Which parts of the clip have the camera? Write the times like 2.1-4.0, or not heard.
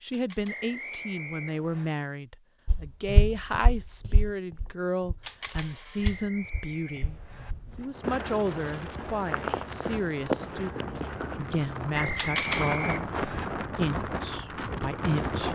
0.1-1.1, 5.2-6.2, 12.2-12.8.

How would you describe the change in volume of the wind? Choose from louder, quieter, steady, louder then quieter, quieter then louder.
louder.